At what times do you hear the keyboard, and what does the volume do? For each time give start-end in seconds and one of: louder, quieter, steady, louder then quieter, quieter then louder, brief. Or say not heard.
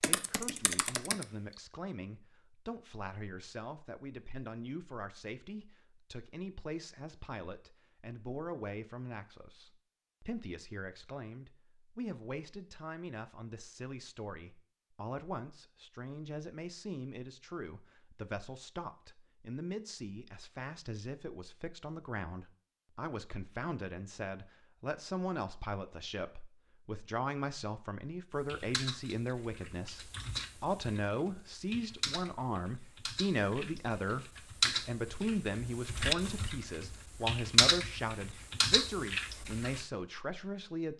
0.0-1.2 brief
28.4-39.9 louder.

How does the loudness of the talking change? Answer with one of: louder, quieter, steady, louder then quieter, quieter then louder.
louder.